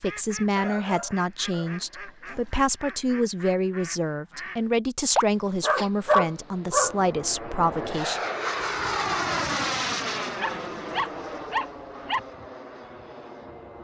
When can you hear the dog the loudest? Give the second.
6 s.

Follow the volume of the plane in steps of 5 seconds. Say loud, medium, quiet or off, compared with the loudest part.
off, loud, medium.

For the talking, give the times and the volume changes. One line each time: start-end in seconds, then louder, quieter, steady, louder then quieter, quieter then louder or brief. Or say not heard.
0.0-8.2 steady.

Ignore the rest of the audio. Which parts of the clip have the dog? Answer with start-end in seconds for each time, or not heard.
0.6-2.5, 5.2-7.0, 10.3-12.2.